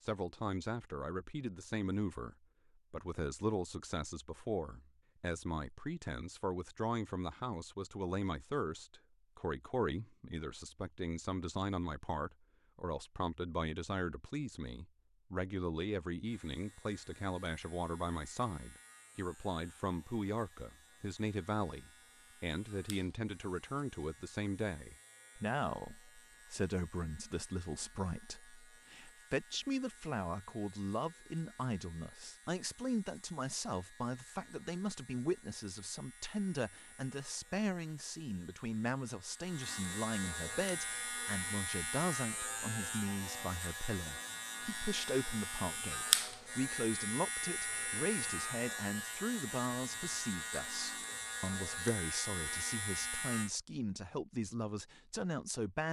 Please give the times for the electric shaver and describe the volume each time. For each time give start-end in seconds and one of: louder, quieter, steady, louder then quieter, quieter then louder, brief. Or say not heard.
16.2-53.5 louder.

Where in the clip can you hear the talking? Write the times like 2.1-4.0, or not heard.
0.1-55.8.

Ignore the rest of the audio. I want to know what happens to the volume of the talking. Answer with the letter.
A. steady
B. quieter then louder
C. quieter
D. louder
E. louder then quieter
A.